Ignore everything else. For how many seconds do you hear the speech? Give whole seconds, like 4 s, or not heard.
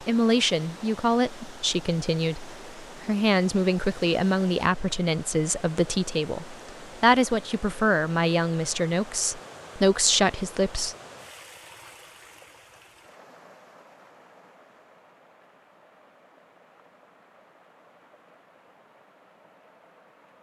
11 s.